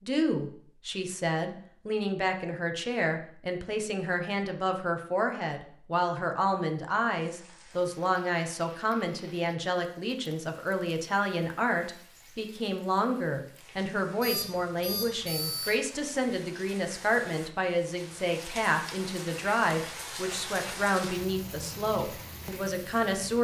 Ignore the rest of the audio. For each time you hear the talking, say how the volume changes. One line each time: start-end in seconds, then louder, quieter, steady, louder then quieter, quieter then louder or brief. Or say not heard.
0.0-23.3 steady.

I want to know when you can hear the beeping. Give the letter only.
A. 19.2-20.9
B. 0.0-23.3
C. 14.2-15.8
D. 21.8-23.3
C.